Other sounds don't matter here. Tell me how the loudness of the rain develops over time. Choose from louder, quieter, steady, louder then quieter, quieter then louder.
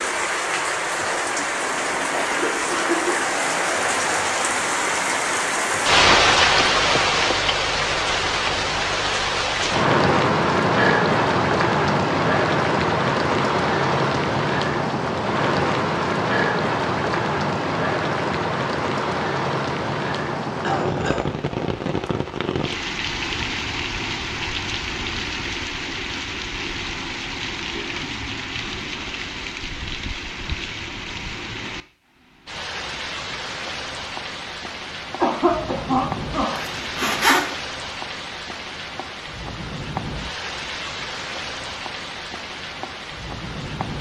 quieter.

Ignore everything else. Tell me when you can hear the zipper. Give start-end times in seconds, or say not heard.
36.5-37.5.